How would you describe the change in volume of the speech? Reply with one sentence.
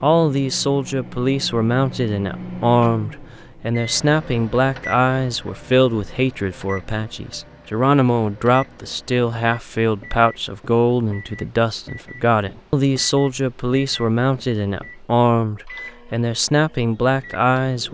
The volume of the speech stays about the same.